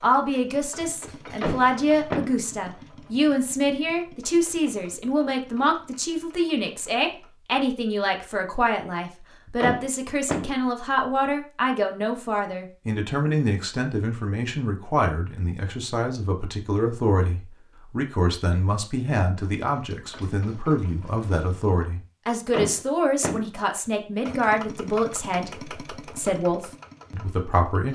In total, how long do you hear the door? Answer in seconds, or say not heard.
3 s.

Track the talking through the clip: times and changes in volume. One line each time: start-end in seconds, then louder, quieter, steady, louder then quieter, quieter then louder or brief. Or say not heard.
0.0-27.9 steady.